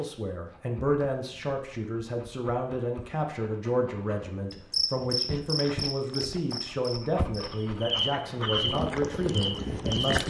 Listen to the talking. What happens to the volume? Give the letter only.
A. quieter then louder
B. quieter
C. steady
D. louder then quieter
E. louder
C.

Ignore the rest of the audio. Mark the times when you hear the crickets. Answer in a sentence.
You can hear the crickets from 4.5 to 10.1 s.